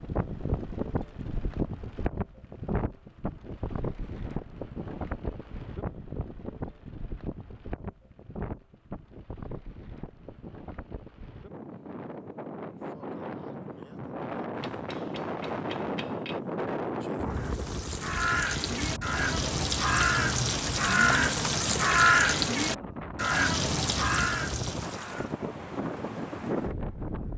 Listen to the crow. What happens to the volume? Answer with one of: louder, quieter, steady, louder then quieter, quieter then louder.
louder then quieter.